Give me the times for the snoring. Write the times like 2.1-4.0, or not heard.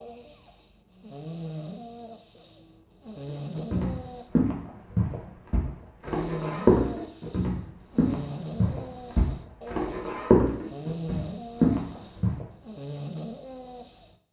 0.0-4.3, 6.0-14.2.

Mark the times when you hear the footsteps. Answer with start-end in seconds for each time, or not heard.
3.5-12.4.